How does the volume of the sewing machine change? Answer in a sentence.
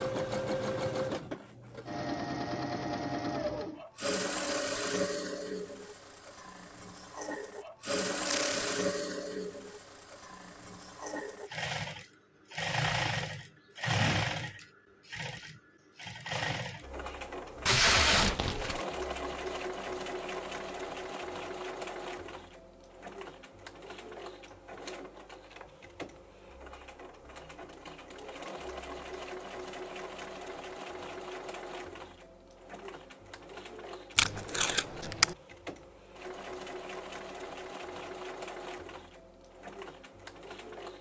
The volume of the sewing machine goes down.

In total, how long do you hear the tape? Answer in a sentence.
You can hear the tape for 3 seconds altogether.